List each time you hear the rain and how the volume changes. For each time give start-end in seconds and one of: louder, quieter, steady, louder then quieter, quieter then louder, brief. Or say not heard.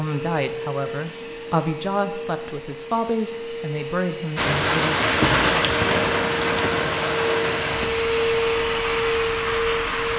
4.3-10.1 quieter.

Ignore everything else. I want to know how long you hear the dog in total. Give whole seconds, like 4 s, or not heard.
not heard.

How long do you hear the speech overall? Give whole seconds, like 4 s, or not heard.
5 s.